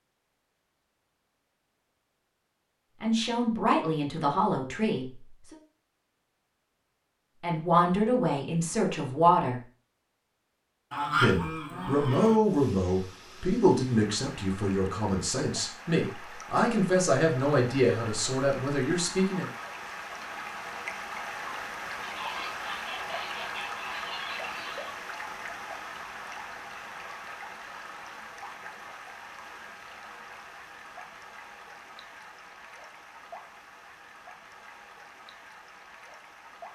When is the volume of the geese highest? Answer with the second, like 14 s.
11 s.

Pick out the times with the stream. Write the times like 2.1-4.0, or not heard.
12.4-36.7.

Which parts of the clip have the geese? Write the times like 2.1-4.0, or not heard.
10.9-12.4, 22.0-24.9.